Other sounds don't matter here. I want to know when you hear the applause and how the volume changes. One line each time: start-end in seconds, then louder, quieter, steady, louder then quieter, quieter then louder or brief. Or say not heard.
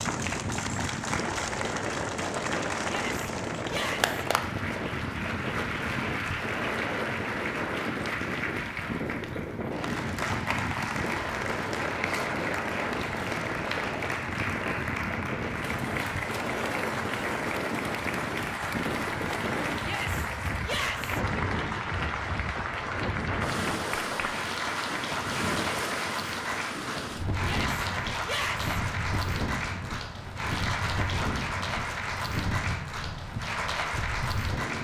0.0-34.7 steady.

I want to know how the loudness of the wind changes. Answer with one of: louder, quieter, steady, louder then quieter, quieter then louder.
steady.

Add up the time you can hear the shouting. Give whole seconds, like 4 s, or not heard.
4 s.